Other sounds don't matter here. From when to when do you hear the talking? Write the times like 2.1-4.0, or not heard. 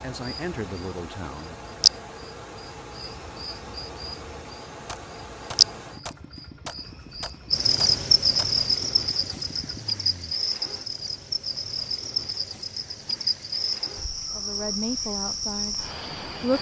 0.0-1.8, 14.3-16.5.